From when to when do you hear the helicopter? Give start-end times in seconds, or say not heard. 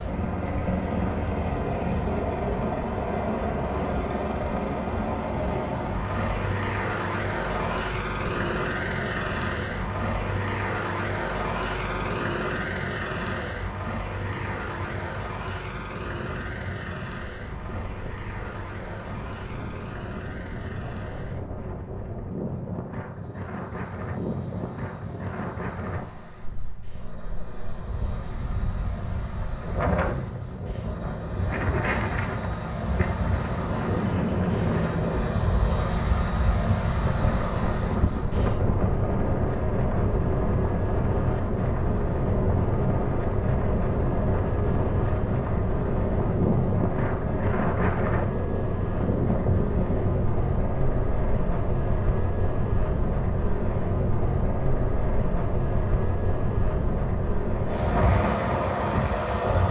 0.0-59.6.